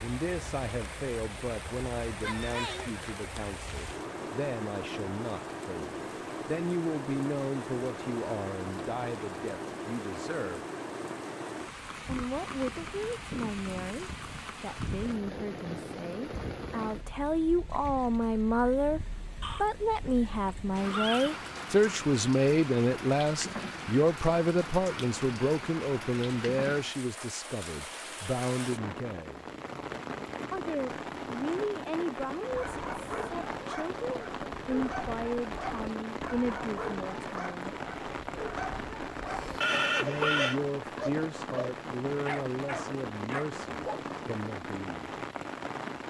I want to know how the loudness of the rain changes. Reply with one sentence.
The volume of the rain stays about the same.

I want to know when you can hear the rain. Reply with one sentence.
You can hear the rain from 0.0 to 46.0 s.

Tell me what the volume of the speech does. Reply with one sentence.
The volume of the speech goes up, then down.